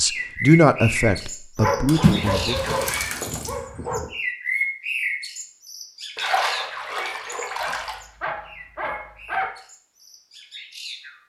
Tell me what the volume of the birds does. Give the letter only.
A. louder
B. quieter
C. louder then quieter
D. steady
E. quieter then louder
B.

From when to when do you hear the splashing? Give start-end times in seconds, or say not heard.
1.9-3.5, 6.2-8.0.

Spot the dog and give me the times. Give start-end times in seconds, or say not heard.
1.6-4.1, 7.6-9.5.